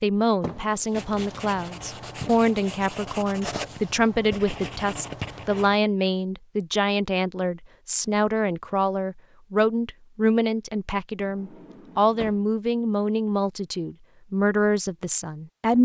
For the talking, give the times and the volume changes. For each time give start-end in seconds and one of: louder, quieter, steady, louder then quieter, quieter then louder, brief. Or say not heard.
0.0-15.8 steady.